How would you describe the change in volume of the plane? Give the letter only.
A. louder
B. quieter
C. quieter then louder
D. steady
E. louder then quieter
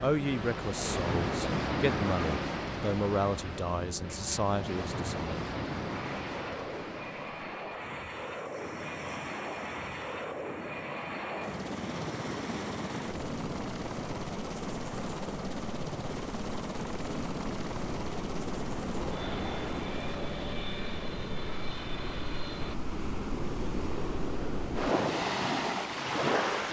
D.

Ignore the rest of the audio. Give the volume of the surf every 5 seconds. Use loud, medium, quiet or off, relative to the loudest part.
medium, medium, quiet, medium, medium, loud.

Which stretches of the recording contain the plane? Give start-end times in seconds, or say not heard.
0.0-22.8.